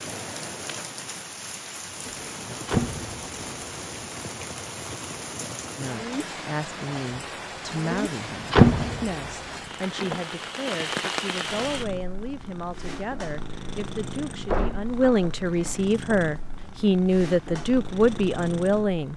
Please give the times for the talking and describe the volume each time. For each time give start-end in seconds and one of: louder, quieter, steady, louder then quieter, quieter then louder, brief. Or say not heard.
5.8-19.1 louder.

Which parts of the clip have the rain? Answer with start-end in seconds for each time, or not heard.
0.0-11.8.